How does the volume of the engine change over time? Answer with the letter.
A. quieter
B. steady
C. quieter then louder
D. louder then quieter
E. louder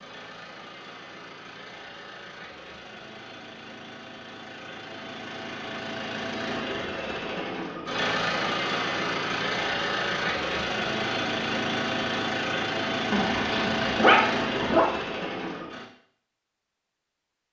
E.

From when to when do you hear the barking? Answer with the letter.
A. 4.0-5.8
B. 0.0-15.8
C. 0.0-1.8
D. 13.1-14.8
D.